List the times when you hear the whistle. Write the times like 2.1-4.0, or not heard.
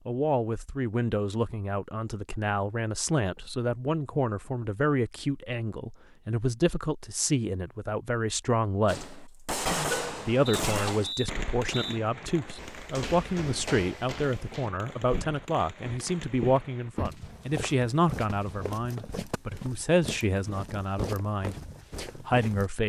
10.4-12.0.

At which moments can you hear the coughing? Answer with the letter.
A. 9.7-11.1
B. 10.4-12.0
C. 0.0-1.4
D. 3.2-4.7
A.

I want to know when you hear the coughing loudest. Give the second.
10 s.